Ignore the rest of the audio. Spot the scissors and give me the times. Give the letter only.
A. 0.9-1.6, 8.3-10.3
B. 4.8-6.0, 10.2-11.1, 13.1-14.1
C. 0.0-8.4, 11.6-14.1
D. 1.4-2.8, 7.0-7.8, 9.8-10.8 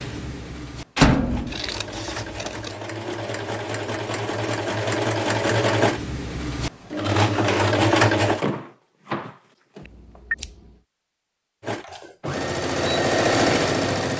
D.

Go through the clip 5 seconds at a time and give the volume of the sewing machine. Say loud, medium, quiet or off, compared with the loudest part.
medium, loud, loud.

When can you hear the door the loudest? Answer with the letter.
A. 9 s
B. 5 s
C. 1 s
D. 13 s
C.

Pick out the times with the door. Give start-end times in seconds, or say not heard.
0.9-1.6, 8.3-10.3.